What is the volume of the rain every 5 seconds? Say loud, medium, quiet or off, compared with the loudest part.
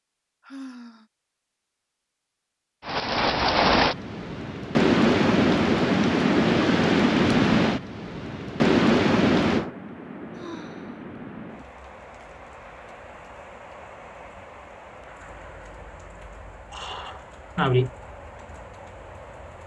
loud, loud, quiet, quiet.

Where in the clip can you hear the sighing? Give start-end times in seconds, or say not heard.
0.4-1.1, 10.3-11.1, 16.7-17.9.